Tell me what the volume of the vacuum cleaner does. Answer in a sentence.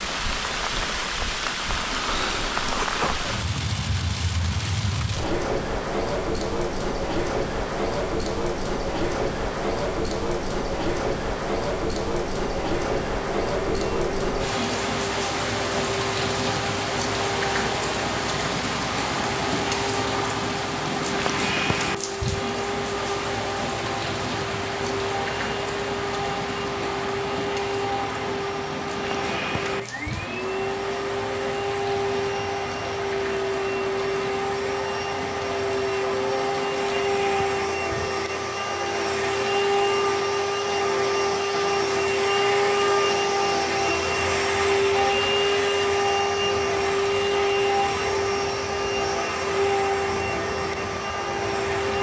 The loudness of the vacuum cleaner goes up.